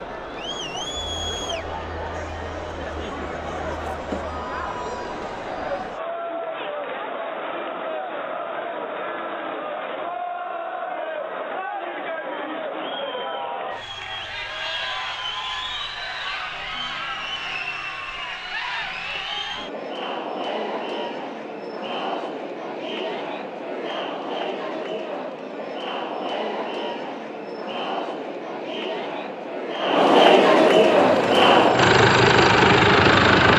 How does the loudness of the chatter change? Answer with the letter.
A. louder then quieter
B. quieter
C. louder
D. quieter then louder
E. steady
C.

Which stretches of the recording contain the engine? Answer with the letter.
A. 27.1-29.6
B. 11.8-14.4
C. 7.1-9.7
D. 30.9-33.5
D.